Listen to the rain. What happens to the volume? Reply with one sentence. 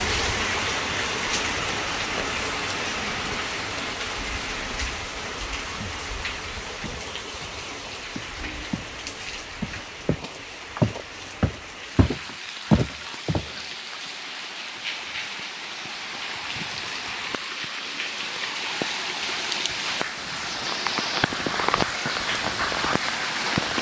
The loudness of the rain goes down, then up.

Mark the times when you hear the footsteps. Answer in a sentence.
You can hear the footsteps from 6.8 to 8.9 s and from 9.6 to 13.6 s.